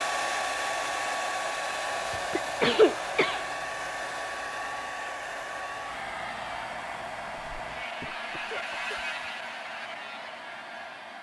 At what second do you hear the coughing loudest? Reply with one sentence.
The loudest moment of the coughing is at 3 seconds.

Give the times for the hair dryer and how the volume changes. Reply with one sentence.
You can hear the hair dryer from 0.0 to 11.1 s, getting quieter.